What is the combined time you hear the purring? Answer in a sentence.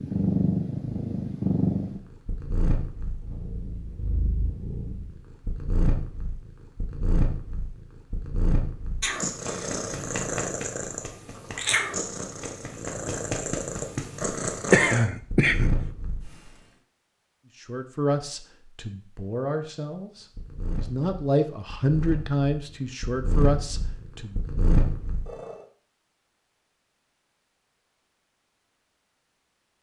The purring can be heard for 22 seconds in total.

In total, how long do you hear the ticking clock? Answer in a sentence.
You can't hear the ticking clock here.